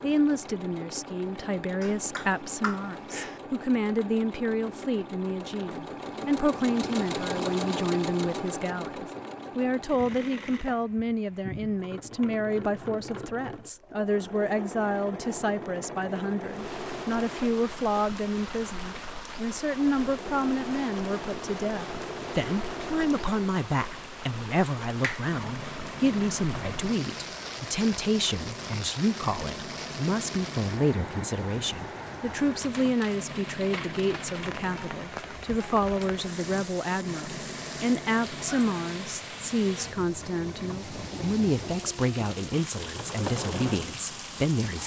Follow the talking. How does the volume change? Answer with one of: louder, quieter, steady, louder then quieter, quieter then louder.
steady.